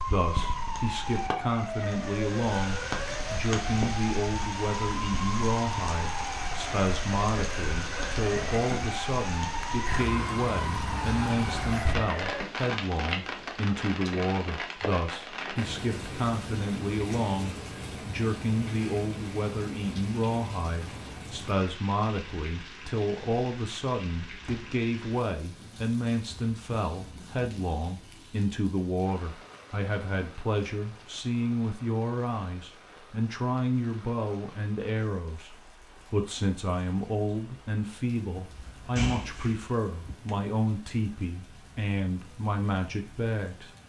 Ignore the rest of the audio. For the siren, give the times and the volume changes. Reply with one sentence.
The siren can be heard from 0.0 to 12.4 s, at a steady volume.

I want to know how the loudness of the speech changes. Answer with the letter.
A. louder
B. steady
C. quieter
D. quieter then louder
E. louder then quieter
B.